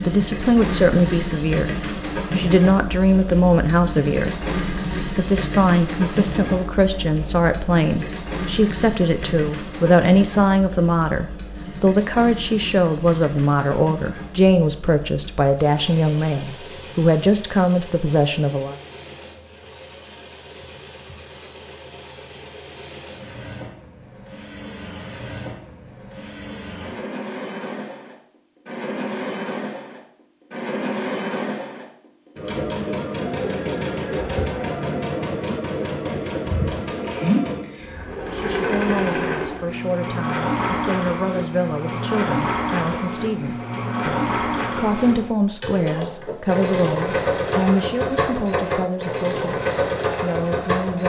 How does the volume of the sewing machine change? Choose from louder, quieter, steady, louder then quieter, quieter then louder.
quieter then louder.